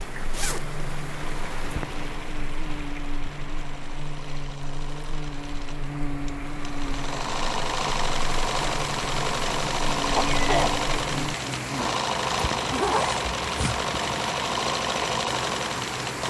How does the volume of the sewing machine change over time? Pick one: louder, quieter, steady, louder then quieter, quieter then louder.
louder.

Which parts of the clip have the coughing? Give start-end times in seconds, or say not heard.
10.2-10.8.